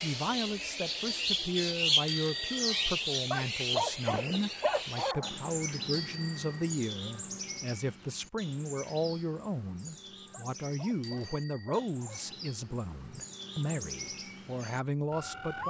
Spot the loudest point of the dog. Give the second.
4 s.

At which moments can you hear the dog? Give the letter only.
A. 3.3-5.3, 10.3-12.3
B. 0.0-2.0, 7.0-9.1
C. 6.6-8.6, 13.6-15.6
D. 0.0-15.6
A.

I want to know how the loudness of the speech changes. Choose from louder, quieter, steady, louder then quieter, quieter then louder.
steady.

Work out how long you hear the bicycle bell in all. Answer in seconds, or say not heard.
2 s.